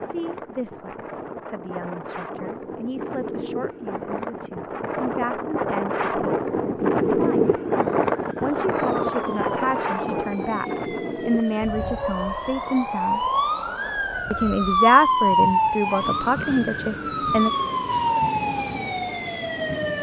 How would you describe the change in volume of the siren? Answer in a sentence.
The volume of the siren goes up.